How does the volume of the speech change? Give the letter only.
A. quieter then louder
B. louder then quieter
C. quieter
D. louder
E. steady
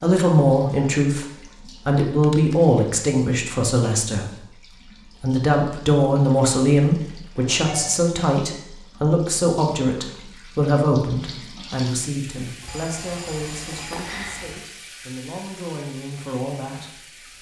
C.